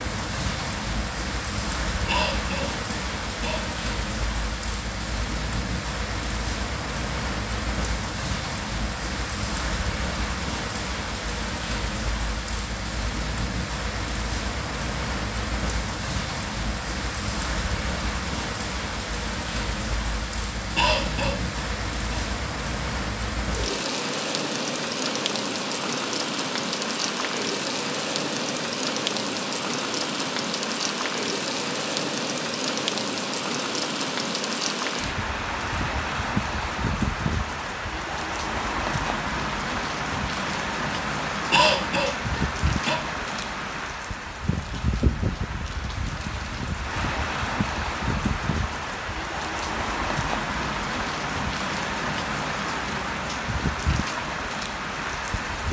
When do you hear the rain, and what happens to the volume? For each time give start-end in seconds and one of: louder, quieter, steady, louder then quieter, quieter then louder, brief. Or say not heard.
0.0-55.6 steady.